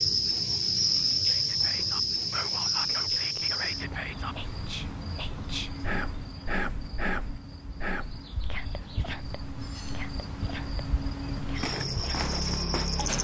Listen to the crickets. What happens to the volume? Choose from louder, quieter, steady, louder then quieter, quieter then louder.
quieter then louder.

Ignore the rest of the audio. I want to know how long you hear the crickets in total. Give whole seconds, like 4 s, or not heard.
13 s.